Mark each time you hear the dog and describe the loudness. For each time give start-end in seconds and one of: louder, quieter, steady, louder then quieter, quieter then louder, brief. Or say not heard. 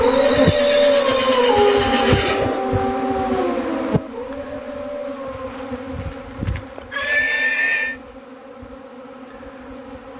0.0-5.3 quieter.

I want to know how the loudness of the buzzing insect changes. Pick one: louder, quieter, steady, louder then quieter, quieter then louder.
quieter.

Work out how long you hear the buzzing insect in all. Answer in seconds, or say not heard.
10 s.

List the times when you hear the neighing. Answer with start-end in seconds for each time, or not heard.
0.0-2.6, 5.3-8.0.